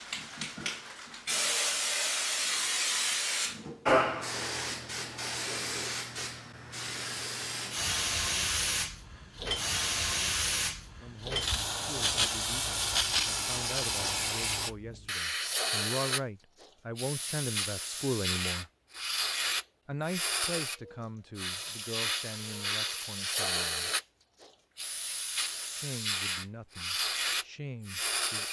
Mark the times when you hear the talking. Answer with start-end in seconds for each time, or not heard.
11.0-18.6, 19.9-23.9, 25.8-28.4.